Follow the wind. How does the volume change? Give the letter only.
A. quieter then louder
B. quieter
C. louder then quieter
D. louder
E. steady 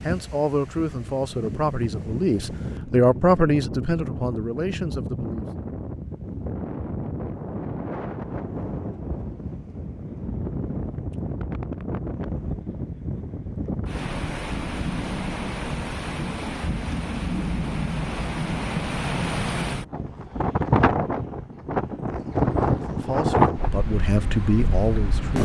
D.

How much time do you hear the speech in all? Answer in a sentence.
You can hear the speech for 8 seconds altogether.